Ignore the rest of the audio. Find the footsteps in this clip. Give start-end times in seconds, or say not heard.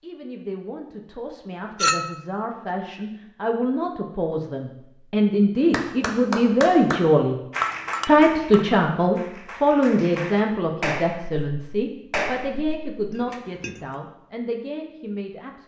not heard.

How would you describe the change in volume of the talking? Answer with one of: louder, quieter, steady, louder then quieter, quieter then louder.
louder then quieter.